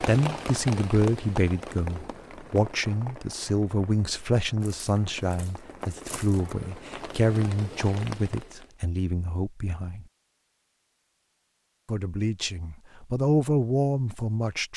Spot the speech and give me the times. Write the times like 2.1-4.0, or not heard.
0.0-10.1, 11.8-14.7.